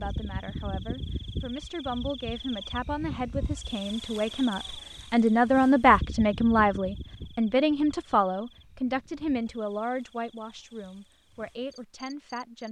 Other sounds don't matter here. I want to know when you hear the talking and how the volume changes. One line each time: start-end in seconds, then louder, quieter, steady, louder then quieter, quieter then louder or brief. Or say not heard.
0.0-12.6 louder then quieter.